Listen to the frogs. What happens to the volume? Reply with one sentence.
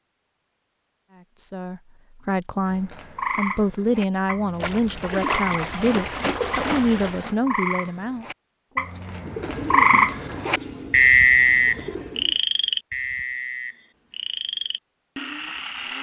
The loudness of the frogs goes up, then down.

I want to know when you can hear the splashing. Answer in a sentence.
You can hear the splashing from 4.6 to 7.3 s.